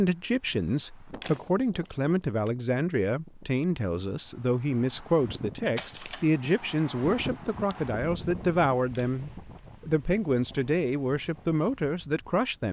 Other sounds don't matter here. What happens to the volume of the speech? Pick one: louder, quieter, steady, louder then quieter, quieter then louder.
steady.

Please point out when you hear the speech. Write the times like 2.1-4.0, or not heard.
0.0-12.6.